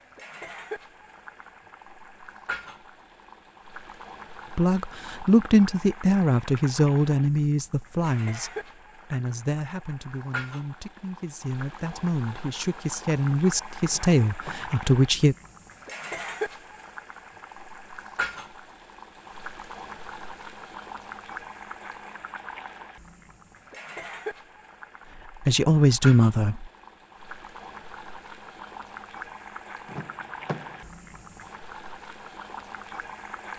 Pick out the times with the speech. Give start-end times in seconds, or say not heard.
4.5-15.3, 25.4-26.7.